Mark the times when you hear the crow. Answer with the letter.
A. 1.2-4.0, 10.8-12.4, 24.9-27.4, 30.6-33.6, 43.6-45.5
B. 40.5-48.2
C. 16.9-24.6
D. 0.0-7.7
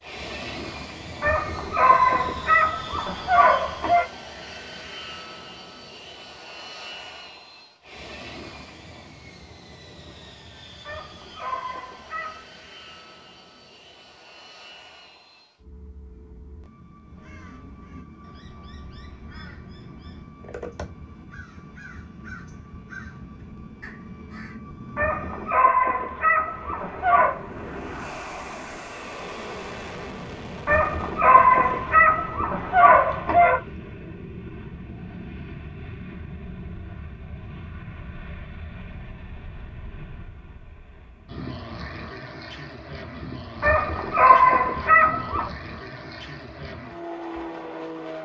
C.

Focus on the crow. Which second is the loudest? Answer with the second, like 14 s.
21 s.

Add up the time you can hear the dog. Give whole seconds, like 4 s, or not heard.
12 s.